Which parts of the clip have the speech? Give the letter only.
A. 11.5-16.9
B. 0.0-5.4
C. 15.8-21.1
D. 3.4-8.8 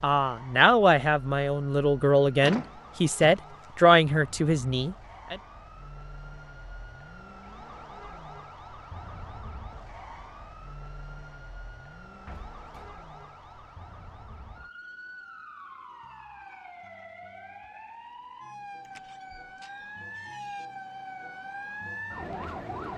B.